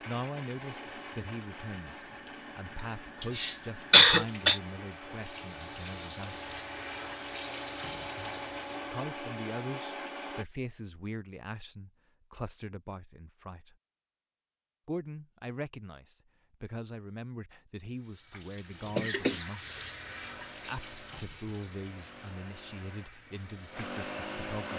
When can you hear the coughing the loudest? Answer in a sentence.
The loudest moment of the coughing is at 4 seconds.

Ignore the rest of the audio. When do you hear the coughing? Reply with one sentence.
You can hear the coughing from 3.2 to 4.6 s and from 18.9 to 19.9 s.